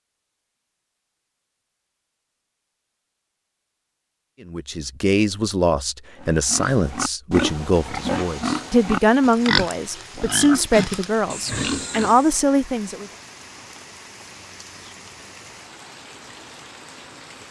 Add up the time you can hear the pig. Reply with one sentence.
You can hear the pig for 6 seconds altogether.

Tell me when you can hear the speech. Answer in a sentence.
The speech can be heard from 4.5 to 13.1 s.